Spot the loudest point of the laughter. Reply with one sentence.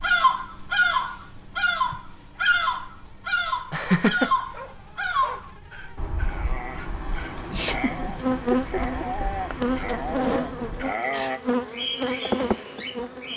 The volume of the laughter peaks at 4 seconds.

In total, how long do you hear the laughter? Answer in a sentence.
You can hear the laughter for 2 seconds altogether.